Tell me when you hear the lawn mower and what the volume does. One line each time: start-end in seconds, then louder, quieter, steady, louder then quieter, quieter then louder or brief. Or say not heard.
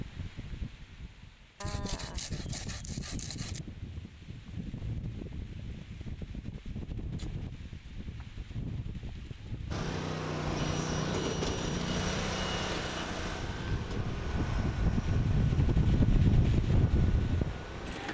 9.7-18.0 quieter.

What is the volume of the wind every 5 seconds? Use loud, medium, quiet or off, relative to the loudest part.
quiet, quiet, medium, loud.